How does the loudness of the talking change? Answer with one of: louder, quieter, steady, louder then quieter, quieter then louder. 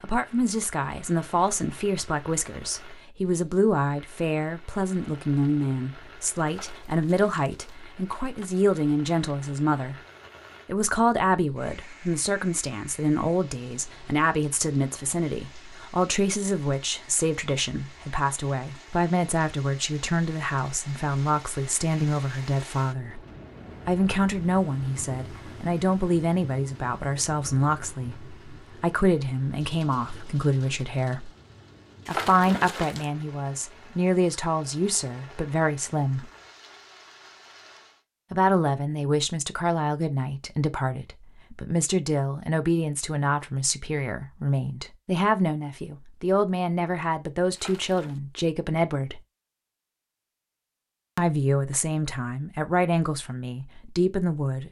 steady.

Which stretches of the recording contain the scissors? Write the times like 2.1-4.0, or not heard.
not heard.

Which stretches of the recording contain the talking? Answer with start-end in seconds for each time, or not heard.
0.0-9.9, 10.7-23.2, 23.9-31.3, 32.0-36.2, 38.3-49.2, 51.1-54.6.